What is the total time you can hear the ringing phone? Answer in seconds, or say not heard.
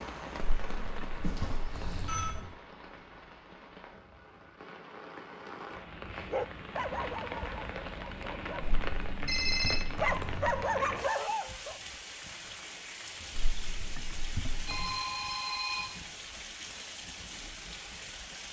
3 s.